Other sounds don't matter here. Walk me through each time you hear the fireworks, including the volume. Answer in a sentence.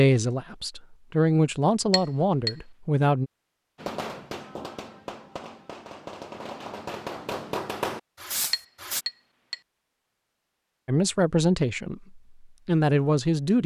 The fireworks can be heard from 3.8 to 9.1 s, getting louder.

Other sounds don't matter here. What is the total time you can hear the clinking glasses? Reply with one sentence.
You can hear the clinking glasses for 2 seconds altogether.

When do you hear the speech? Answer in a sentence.
You can hear the speech from 0.0 to 3.3 s and from 10.8 to 13.6 s.